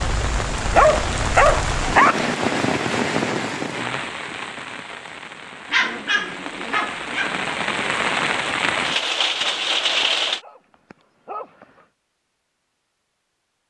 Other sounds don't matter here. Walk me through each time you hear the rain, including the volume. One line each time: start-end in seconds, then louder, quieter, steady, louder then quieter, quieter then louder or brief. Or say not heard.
0.0-10.4 quieter then louder.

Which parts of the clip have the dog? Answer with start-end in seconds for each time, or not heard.
0.7-2.3, 5.7-7.5, 9.4-11.8.